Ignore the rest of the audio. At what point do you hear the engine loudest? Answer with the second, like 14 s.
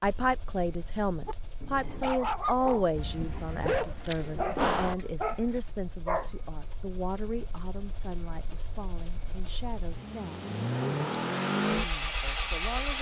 11 s.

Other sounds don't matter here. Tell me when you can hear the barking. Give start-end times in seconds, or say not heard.
1.2-6.3.